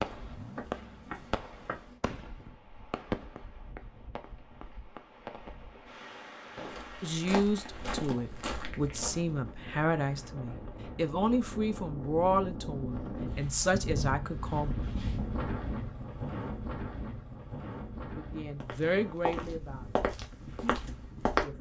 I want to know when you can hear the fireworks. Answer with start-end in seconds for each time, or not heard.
0.0-6.9.